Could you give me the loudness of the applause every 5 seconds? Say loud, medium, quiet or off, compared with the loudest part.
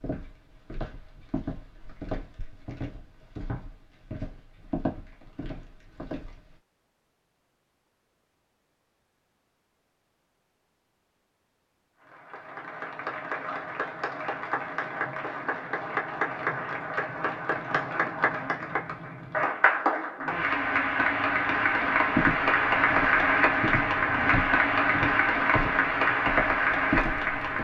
off, off, medium, medium, loud, loud.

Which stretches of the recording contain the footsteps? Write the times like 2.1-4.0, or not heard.
0.0-6.5, 22.1-27.5.